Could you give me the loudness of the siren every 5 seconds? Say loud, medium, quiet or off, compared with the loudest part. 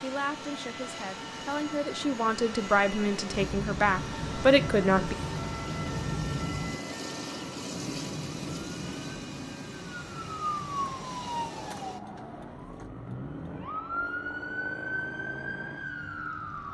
medium, medium, loud, loud.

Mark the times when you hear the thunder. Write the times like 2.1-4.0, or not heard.
3.3-6.8.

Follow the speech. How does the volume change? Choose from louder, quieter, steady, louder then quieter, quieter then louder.
louder.